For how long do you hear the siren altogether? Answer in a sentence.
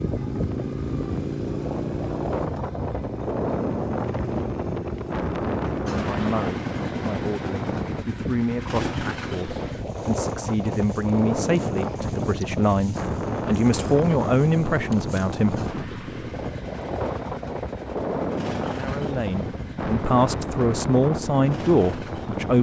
The siren can't be heard in this clip.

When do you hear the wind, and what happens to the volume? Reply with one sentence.
The wind can be heard from 0.0 to 22.5 s, at a steady volume.